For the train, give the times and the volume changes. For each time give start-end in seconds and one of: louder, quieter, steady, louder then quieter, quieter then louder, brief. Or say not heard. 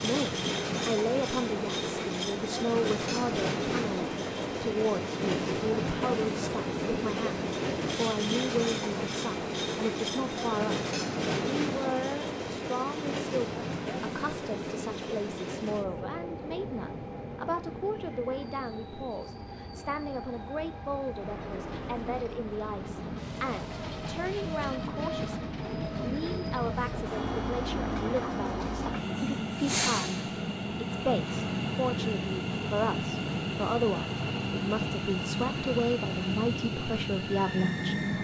0.0-38.1 quieter then louder.